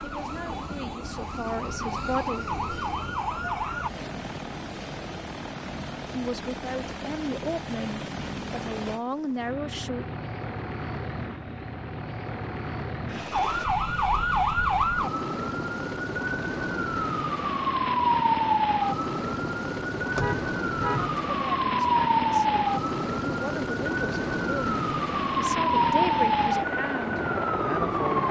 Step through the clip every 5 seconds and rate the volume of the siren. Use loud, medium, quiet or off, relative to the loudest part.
medium, off, loud, loud, loud, loud.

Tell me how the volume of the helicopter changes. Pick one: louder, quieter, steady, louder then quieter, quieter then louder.
louder.